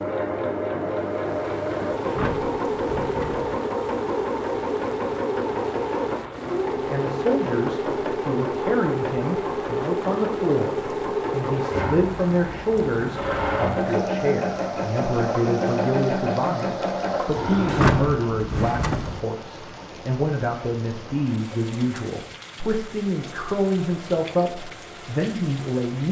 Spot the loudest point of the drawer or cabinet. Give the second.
18 s.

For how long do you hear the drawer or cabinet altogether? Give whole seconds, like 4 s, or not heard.
3 s.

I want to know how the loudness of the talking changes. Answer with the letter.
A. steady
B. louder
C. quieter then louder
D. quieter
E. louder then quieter
A.